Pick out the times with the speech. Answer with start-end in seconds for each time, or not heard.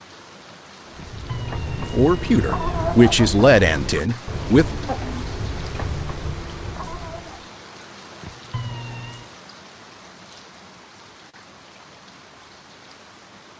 1.8-4.8.